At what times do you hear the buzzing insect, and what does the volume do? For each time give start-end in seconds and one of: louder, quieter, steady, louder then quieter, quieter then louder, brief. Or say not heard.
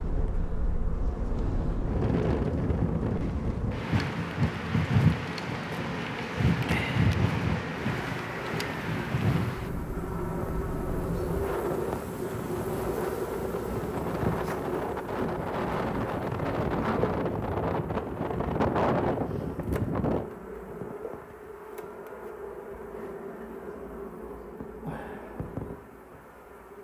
0.0-26.7 louder then quieter.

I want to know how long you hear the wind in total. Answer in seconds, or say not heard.
20 s.